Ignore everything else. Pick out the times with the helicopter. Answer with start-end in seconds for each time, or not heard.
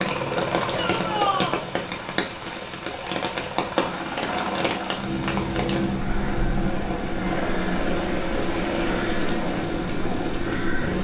0.0-10.9.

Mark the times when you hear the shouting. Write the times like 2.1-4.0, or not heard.
0.7-1.6.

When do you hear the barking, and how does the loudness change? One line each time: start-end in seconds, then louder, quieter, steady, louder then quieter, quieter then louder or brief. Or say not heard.
not heard.